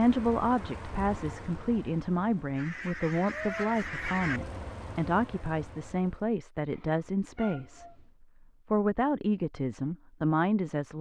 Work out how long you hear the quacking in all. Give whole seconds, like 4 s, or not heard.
2 s.